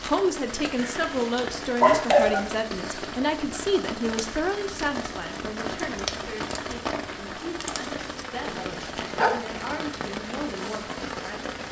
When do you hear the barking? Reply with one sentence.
You can hear the barking from 0.8 to 2.5 s and from 8.4 to 9.3 s.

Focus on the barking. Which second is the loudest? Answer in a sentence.
The loudest moment of the barking is at 2 seconds.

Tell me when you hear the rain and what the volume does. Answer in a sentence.
You can hear the rain from 0.0 to 11.6 s, at a steady volume.